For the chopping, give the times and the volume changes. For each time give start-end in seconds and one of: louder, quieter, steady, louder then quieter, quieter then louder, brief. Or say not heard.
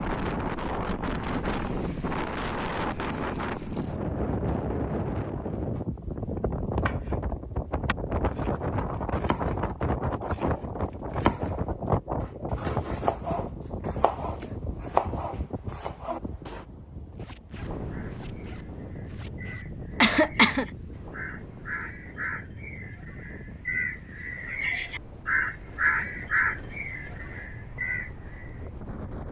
6.7-16.6 louder.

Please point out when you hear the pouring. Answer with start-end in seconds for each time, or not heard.
not heard.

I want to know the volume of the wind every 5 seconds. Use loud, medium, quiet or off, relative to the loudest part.
loud, loud, loud, medium, quiet, quiet.